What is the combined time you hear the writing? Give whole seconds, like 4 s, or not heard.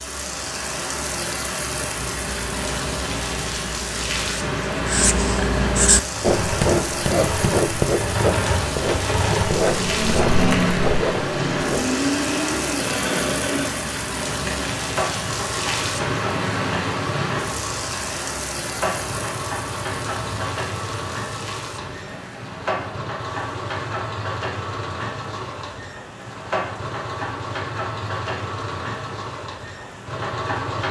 10 s.